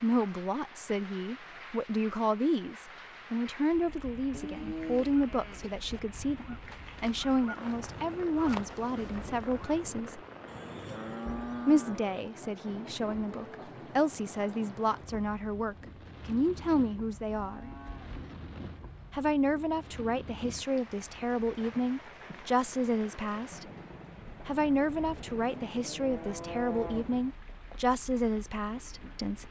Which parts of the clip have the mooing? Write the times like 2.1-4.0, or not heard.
4.3-5.7, 10.4-12.2, 17.3-18.3, 25.1-27.1.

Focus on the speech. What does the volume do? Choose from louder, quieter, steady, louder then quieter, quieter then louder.
steady.